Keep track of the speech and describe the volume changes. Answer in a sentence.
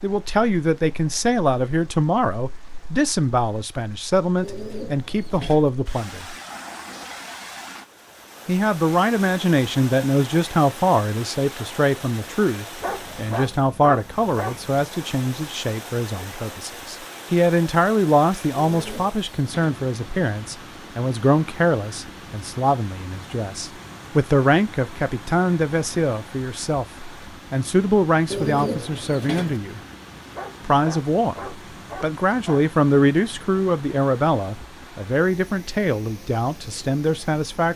The volume of the speech stays about the same.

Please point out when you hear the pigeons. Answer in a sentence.
You can hear the pigeons from 4.4 to 5.7 s, from 18.6 to 19.8 s and from 28.3 to 29.6 s.